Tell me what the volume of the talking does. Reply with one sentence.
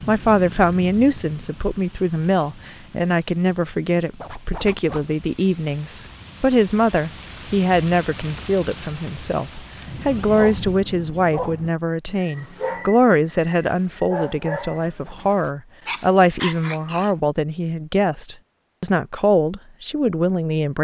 The volume of the talking stays about the same.